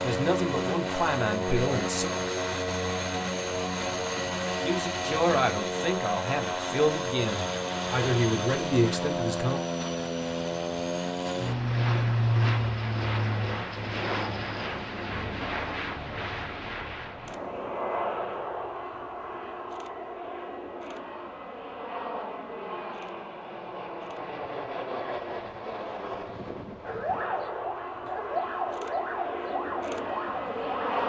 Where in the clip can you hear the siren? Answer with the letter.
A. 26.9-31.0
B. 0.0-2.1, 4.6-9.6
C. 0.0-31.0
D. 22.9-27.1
A.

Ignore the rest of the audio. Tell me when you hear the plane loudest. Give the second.
12 s.